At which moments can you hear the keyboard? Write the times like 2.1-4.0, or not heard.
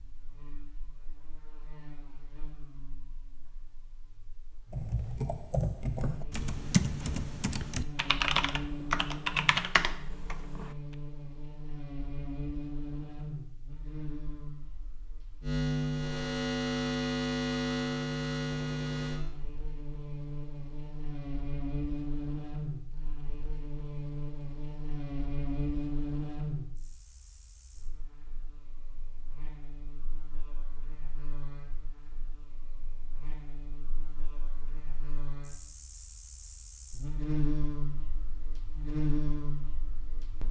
4.7-10.7.